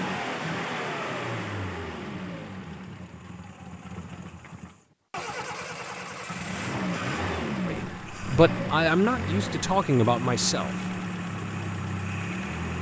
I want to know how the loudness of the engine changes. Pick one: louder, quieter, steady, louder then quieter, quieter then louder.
quieter then louder.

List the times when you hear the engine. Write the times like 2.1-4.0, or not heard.
0.0-12.7.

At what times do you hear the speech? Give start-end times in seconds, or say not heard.
7.6-10.8.